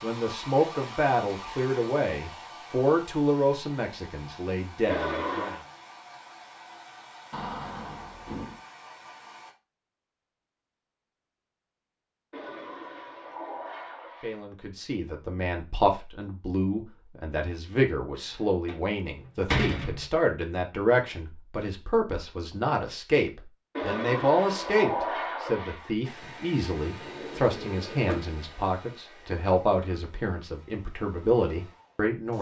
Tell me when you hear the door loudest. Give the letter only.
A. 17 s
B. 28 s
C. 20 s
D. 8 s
C.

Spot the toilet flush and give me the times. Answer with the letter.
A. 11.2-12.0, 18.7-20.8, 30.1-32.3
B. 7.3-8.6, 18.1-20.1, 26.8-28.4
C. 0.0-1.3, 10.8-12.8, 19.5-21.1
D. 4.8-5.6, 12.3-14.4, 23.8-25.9
D.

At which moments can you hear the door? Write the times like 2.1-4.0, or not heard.
7.3-8.6, 18.1-20.1, 26.8-28.4.